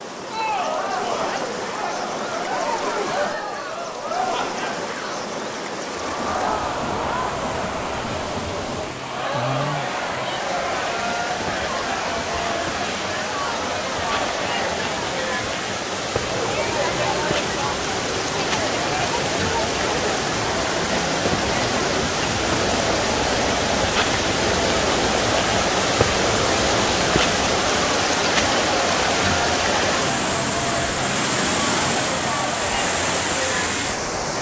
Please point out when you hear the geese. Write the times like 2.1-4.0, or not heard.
not heard.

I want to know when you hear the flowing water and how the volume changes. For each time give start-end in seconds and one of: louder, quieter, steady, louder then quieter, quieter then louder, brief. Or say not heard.
0.0-34.3 louder.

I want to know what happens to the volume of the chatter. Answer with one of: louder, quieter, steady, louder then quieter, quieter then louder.
steady.